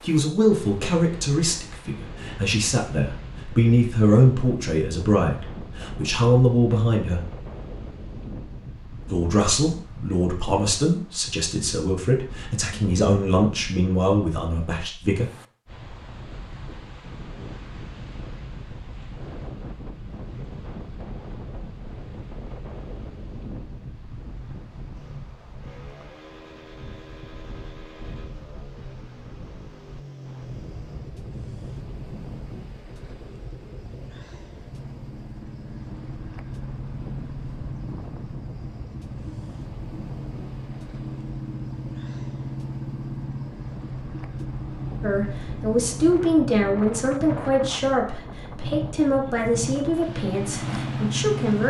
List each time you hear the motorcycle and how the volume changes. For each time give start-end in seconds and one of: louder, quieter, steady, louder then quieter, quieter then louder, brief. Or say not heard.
24.9-51.6 louder.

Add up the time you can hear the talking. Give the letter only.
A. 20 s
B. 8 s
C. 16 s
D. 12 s
A.